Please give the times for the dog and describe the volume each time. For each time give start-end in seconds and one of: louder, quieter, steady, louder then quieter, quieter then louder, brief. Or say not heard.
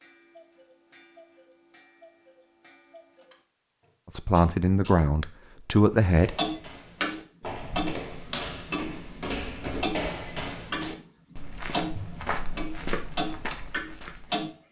not heard.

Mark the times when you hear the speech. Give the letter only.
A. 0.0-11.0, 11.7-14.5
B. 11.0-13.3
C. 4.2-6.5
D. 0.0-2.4
C.